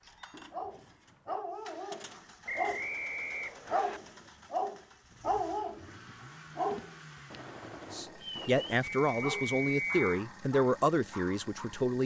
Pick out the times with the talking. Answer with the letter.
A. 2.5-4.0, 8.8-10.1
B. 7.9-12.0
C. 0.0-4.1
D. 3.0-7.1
B.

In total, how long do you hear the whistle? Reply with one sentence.
You can hear the whistle for 3 seconds altogether.